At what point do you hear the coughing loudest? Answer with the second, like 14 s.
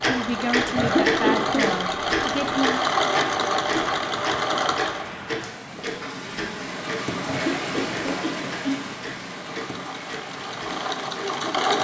1 s.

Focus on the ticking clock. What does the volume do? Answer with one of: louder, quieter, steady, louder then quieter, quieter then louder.
quieter.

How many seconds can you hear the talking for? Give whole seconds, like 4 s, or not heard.
3 s.